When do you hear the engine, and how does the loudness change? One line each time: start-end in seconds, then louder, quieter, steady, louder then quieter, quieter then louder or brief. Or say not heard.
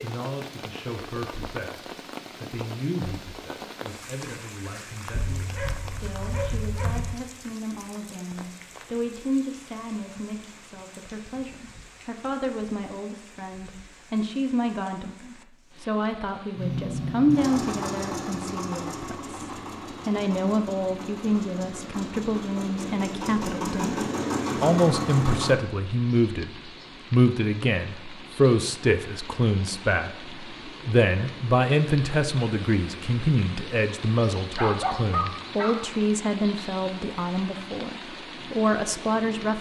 16.6-25.6 quieter then louder.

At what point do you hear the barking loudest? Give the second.
35 s.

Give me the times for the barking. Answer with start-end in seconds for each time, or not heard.
5.1-7.2, 34.5-35.8.